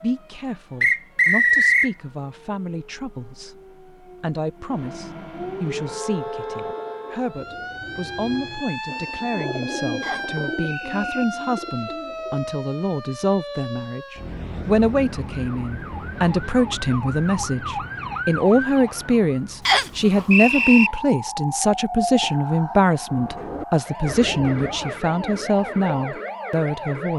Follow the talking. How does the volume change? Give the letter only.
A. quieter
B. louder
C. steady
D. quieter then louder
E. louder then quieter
B.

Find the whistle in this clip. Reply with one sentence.
The whistle can be heard from 0.8 to 1.9 s, from 10.0 to 11.1 s and from 19.6 to 20.9 s.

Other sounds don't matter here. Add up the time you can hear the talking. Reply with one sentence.
You can hear the talking for 27 seconds altogether.